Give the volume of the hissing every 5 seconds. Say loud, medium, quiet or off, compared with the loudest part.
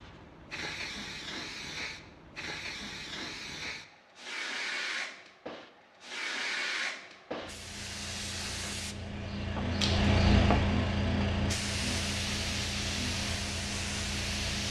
medium, medium, loud.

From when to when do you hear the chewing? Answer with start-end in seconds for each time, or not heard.
not heard.